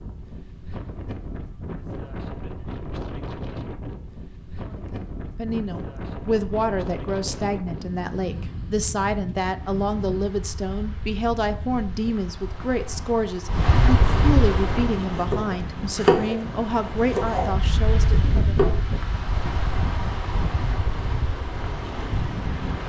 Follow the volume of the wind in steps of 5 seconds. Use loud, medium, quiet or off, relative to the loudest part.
medium, medium, loud, loud, loud.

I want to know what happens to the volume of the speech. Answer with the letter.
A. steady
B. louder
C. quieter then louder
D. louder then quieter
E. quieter
A.